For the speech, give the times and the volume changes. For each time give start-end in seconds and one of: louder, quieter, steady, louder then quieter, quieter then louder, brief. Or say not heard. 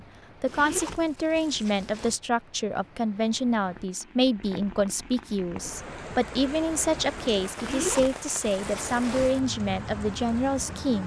0.4-11.0 steady.